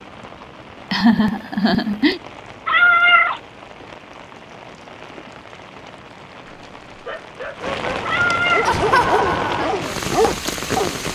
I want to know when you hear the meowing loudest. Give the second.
3 s.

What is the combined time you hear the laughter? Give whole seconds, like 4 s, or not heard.
2 s.